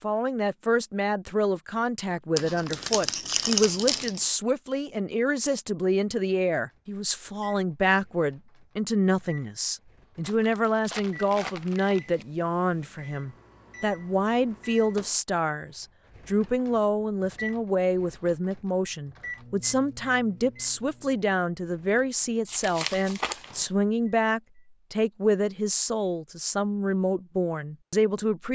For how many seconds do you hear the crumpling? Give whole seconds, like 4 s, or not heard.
5 s.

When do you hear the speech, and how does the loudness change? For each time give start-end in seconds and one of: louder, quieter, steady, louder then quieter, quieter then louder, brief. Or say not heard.
0.0-28.5 steady.